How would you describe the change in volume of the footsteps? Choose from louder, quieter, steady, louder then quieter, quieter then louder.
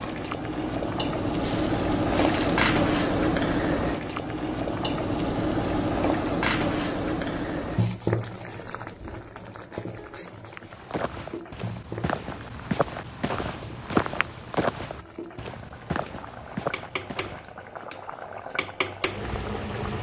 louder then quieter.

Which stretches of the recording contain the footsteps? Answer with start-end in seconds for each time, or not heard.
10.5-17.9.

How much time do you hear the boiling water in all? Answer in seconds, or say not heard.
20 s.